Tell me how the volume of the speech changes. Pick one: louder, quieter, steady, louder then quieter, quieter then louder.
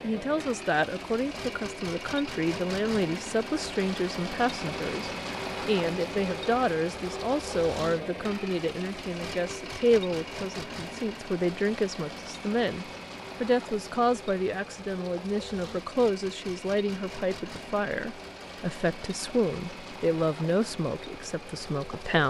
steady.